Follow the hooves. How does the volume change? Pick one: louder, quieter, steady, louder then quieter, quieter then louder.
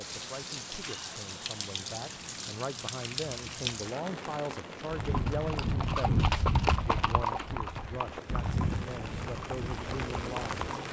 quieter.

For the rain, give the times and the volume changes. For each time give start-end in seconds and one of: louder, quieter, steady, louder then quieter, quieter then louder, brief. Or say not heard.
0.0-10.8 quieter then louder.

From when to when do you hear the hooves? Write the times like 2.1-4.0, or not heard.
4.8-10.8.